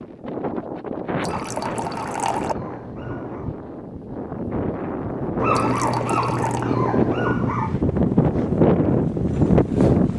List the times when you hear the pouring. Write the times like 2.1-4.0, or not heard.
1.2-2.5, 5.5-6.7.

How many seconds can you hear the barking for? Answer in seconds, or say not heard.
5 s.